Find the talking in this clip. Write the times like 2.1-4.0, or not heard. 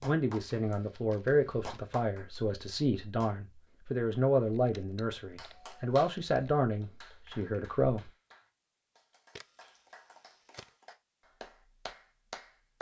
0.0-8.1.